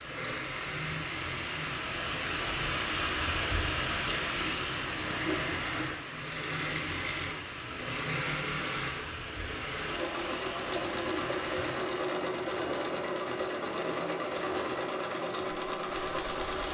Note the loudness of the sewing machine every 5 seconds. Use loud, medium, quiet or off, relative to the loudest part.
medium, loud, loud, loud.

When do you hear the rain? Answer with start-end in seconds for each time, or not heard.
0.0-16.6.